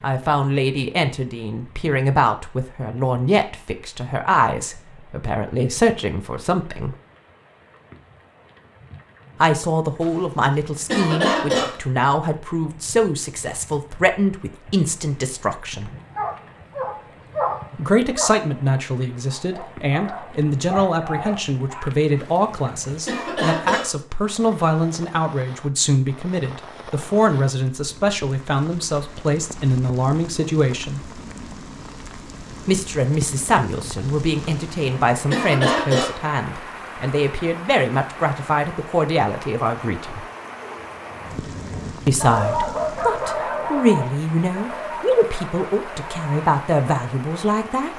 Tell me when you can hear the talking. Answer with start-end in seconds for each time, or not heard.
0.0-6.9, 9.4-15.9, 17.8-31.0, 32.6-40.2, 42.0-47.9.